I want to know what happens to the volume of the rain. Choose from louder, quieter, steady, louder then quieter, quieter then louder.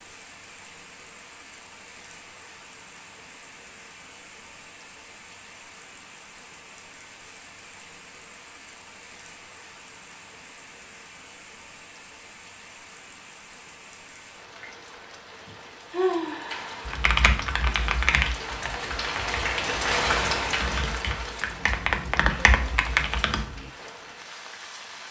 louder.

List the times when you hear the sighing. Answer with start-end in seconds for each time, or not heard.
15.9-16.9.